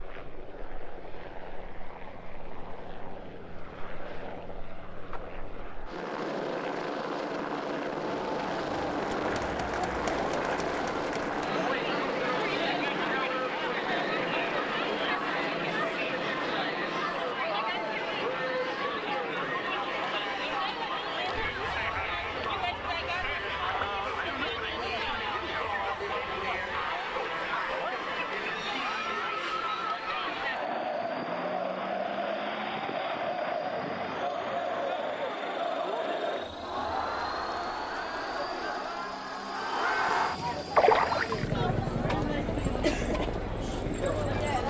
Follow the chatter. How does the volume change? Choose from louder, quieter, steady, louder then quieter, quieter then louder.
steady.